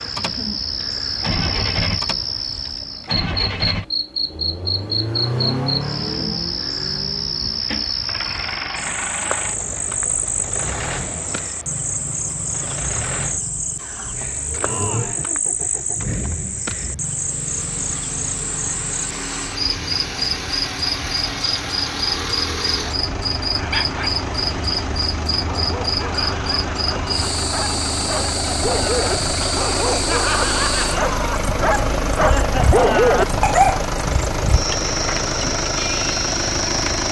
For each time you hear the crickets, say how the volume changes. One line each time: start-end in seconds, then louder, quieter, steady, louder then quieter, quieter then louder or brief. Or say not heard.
0.0-37.0 steady.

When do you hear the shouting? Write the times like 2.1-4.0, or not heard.
14.6-15.2.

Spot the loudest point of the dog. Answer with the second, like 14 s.
33 s.